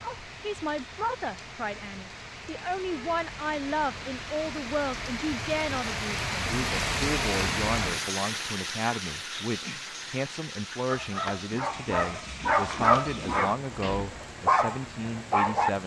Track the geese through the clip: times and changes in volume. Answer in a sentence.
The geese can't be heard in this clip.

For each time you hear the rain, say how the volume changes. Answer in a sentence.
The rain can be heard from 0.0 to 15.8 s, getting louder then quieter.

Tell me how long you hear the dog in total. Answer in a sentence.
You can hear the dog for 5 seconds altogether.